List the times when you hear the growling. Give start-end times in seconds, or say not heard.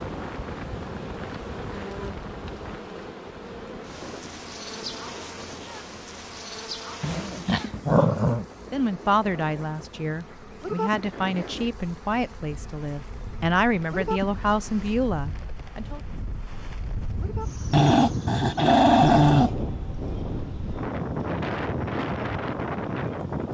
7.0-8.4, 17.7-19.6.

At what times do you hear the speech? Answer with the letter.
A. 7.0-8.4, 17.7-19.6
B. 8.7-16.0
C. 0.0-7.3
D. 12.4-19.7
B.